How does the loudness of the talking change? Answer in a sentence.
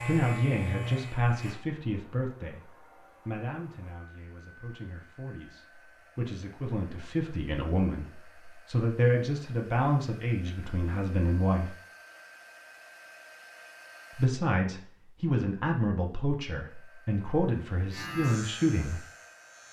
The volume of the talking goes down, then up.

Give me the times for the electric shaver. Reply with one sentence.
The electric shaver can be heard from 0.0 to 1.6 s and from 17.9 to 19.6 s.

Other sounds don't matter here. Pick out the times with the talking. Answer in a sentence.
The talking can be heard from 0.0 to 11.8 s and from 14.2 to 19.0 s.